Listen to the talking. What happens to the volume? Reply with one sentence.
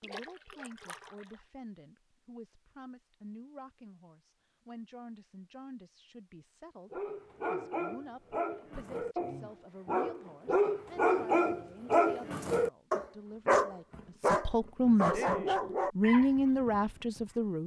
The volume of the talking goes up.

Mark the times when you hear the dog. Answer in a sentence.
The dog can be heard from 6.9 to 17.3 s.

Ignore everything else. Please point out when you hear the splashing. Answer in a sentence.
The splashing can be heard from 0.0 to 1.4 s.